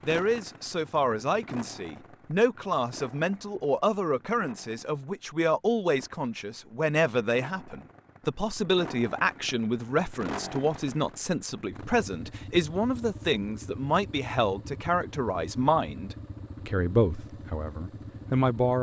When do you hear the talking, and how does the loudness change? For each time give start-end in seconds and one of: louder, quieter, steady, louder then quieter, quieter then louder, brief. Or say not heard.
0.1-18.7 steady.